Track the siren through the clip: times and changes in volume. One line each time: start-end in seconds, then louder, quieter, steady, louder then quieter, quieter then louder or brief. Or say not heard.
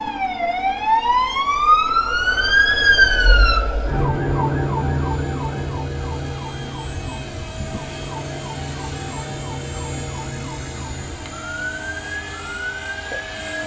0.0-13.6 quieter.